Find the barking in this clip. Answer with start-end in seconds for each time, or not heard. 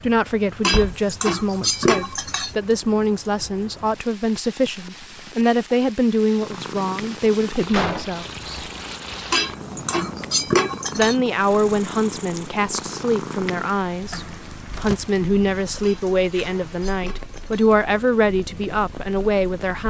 not heard.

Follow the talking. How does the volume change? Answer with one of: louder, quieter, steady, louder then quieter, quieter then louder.
steady.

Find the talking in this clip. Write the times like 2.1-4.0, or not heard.
0.0-8.6, 10.9-19.8.